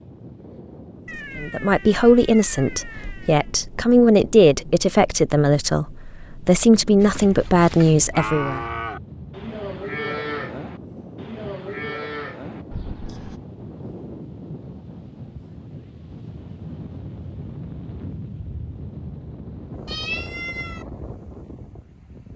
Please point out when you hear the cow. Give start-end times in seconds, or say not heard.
7.0-13.4.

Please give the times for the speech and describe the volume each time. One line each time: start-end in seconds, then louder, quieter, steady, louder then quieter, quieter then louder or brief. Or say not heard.
1.4-8.7 steady.